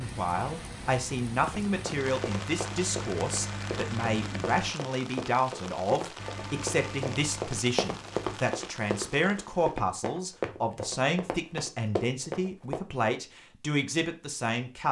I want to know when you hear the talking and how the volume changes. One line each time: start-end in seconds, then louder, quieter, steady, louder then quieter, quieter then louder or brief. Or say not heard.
0.0-14.8 steady.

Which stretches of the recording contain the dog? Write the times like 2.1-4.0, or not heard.
not heard.